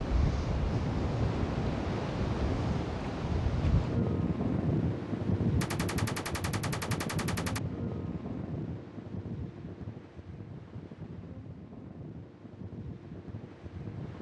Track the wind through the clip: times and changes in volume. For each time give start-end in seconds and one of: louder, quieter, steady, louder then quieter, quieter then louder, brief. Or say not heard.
0.0-14.1 quieter.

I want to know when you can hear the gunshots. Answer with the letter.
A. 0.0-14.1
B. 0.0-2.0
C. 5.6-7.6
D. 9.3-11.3
C.